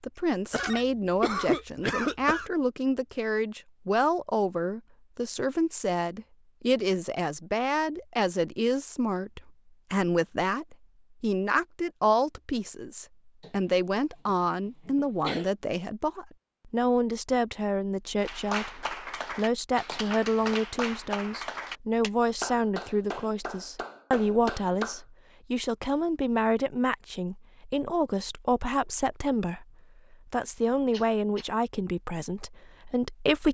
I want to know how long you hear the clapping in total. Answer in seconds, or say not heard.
7 s.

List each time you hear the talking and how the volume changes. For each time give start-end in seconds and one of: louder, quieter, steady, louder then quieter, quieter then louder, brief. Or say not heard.
0.0-33.4 steady.